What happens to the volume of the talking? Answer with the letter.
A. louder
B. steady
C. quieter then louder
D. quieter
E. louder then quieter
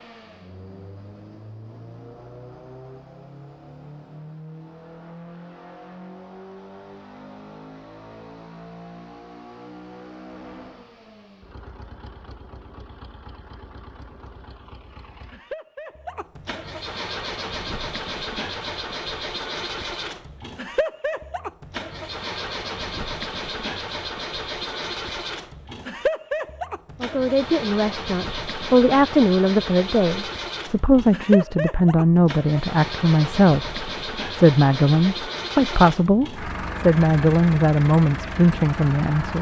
B.